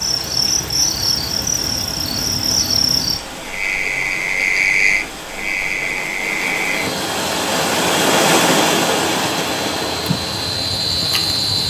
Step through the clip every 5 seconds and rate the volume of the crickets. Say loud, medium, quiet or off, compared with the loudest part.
loud, medium, loud.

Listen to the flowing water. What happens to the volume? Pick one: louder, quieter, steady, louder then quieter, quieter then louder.
louder then quieter.